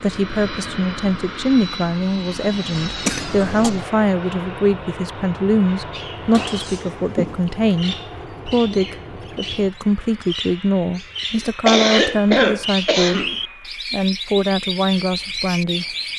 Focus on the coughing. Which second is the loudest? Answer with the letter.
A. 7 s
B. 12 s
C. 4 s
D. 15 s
B.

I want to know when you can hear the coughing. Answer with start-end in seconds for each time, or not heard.
3.0-3.7, 6.3-7.8, 11.7-13.4.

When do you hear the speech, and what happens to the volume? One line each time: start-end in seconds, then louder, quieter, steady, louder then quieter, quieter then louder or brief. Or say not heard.
0.0-13.2 steady
13.9-15.8 brief.